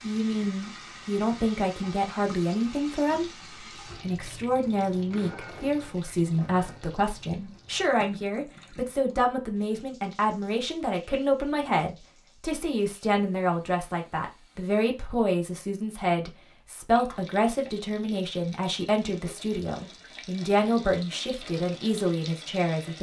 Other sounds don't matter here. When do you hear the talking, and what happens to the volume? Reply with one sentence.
The talking can be heard from 0.0 to 22.9 s, at a steady volume.